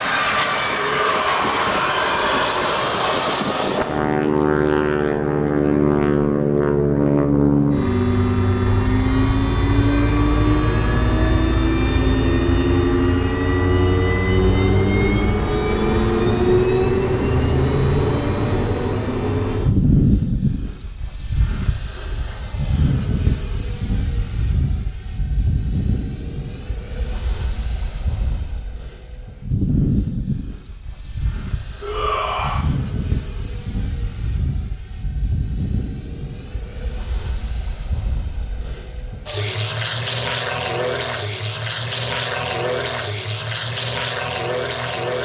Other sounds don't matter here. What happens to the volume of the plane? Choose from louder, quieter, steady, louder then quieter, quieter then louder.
quieter.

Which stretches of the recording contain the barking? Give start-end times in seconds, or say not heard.
not heard.